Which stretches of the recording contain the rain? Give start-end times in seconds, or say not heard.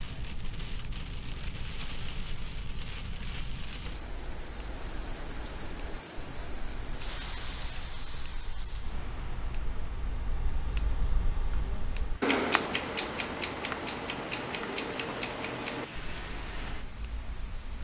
0.0-17.7.